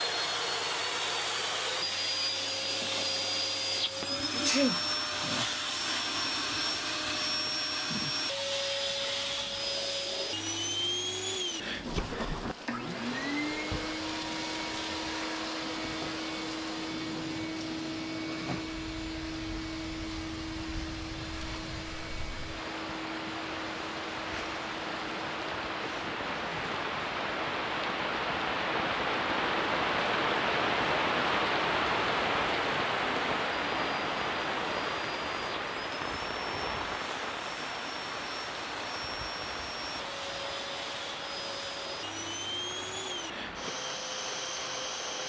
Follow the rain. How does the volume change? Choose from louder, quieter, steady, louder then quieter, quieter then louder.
louder then quieter.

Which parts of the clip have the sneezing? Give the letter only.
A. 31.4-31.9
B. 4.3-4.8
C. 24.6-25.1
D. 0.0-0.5
B.